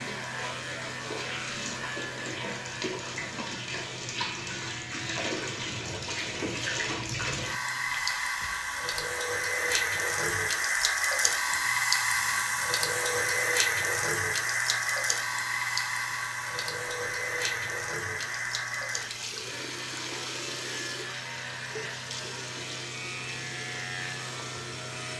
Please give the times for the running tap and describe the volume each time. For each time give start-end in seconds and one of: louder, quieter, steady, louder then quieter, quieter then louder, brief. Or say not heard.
0.0-25.1 louder then quieter.